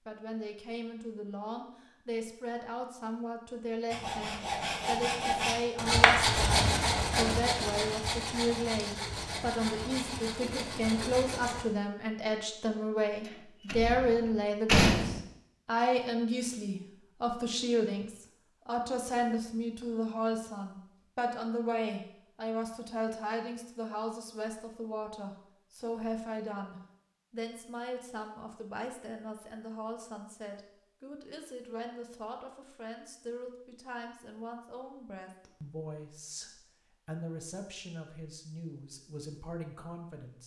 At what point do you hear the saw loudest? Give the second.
6 s.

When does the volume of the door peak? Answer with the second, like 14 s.
15 s.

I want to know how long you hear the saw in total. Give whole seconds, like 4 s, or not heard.
8 s.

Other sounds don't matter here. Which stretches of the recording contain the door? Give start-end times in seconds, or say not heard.
13.7-15.2.